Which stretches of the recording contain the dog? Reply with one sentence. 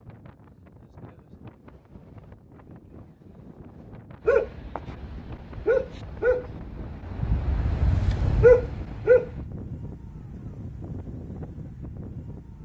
The dog can be heard from 4.2 to 9.4 s.